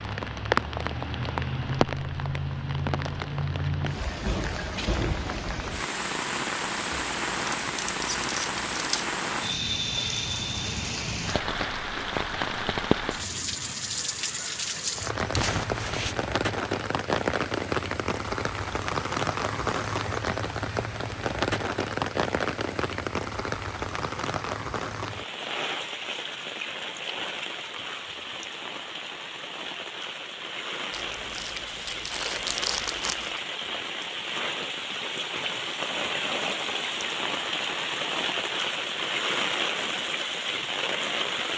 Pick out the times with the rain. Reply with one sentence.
The rain can be heard from 0.0 to 41.5 s.